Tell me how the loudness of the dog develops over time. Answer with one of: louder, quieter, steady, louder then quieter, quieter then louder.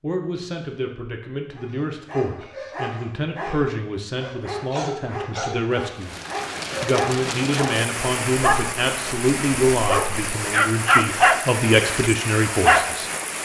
louder.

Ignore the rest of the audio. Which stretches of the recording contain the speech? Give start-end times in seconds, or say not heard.
0.0-6.2, 6.8-13.1.